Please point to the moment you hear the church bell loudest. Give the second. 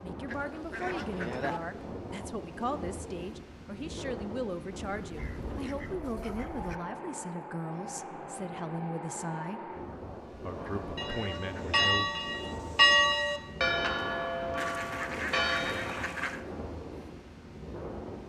13 s.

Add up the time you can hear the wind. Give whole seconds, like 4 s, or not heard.
18 s.